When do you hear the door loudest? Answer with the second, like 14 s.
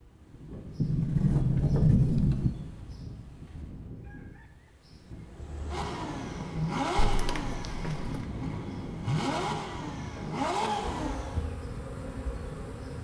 2 s.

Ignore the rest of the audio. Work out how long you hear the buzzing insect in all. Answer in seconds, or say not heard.
2 s.